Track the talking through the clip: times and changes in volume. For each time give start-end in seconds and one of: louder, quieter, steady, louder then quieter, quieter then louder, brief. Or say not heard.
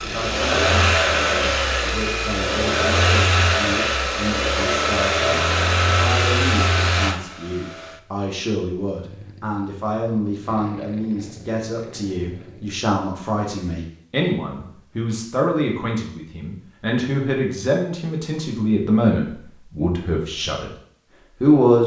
0.0-20.7 louder
21.4-21.8 brief.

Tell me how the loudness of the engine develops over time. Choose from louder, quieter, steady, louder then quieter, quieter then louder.
quieter.